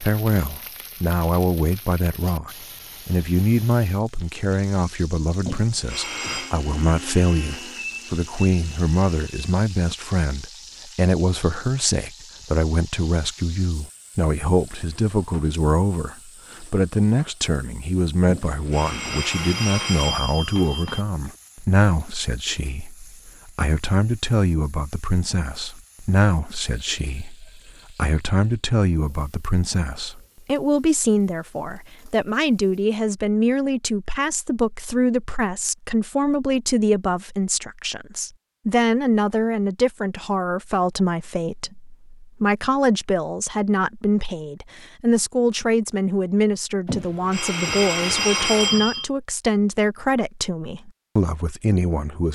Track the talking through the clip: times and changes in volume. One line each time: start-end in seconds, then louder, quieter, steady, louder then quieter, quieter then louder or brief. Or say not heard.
0.0-52.2 steady.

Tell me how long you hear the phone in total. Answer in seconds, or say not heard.
6 s.